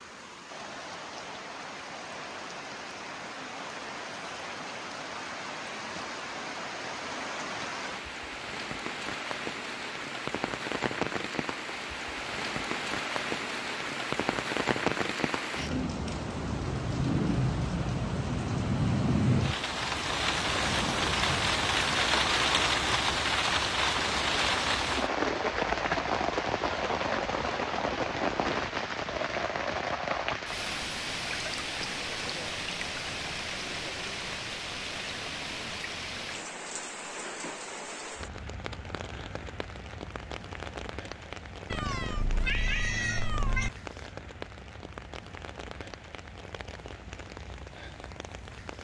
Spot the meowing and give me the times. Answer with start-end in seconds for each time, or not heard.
41.7-43.7.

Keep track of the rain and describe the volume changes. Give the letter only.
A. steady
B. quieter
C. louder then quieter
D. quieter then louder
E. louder
C.